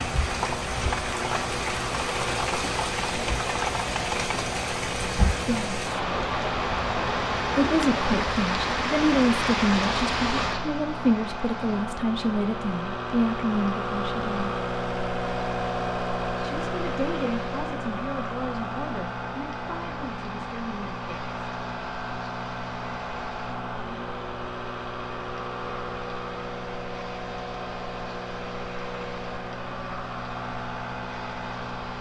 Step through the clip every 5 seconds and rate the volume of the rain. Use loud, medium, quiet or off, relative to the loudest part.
loud, loud, medium, quiet, quiet, quiet, quiet.